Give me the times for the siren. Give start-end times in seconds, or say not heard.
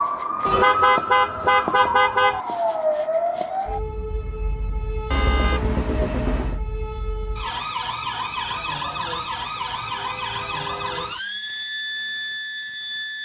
0.0-13.2.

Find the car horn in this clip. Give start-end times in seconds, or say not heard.
0.5-2.4, 5.1-6.6, 9.6-11.2.